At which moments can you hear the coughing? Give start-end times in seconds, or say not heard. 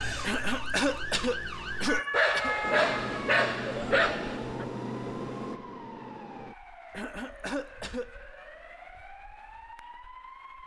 0.2-2.5, 6.9-8.1.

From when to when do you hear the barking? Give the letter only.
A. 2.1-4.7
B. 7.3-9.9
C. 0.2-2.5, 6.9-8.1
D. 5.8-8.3
A.